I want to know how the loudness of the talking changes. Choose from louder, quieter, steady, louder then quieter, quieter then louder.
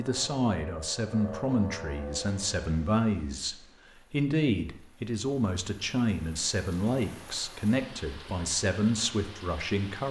steady.